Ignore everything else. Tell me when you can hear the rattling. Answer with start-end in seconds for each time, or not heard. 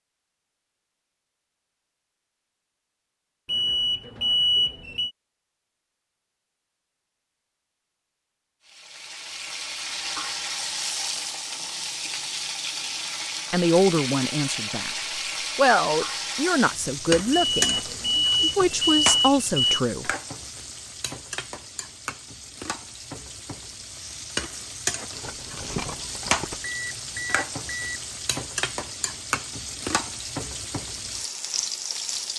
25.1-26.6.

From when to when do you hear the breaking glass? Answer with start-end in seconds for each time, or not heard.
not heard.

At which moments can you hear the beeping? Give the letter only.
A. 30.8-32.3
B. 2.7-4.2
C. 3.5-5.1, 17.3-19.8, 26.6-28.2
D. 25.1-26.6
C.